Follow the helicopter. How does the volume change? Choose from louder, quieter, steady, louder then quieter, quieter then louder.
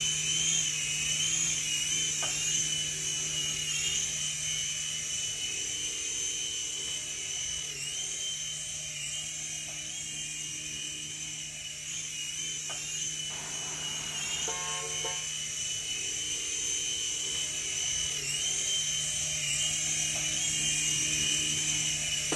quieter then louder.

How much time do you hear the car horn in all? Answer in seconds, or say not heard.
2 s.